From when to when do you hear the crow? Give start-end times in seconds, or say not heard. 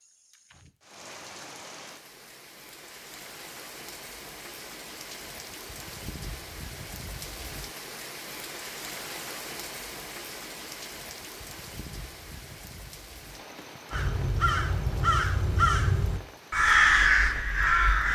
13.9-18.0.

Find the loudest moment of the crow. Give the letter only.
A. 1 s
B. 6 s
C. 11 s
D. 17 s
D.